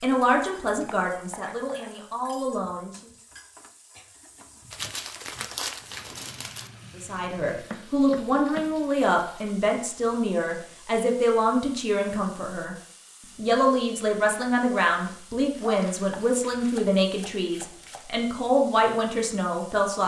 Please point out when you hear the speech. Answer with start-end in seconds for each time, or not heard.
0.0-3.0, 7.0-12.8, 13.3-20.0.